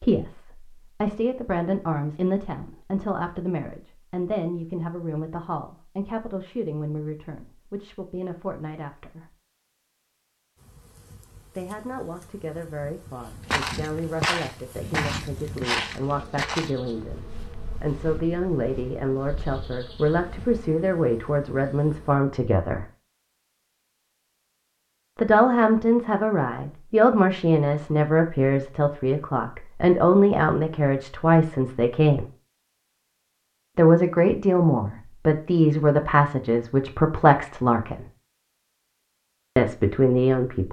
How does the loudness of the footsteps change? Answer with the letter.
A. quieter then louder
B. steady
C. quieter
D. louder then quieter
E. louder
C.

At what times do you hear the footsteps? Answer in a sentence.
The footsteps can be heard from 13.5 to 20.8 s.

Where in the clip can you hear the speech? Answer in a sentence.
The speech can be heard from 0.0 to 9.3 s, from 11.6 to 22.9 s, from 25.1 to 32.2 s, from 33.8 to 38.0 s and from 39.5 to 40.6 s.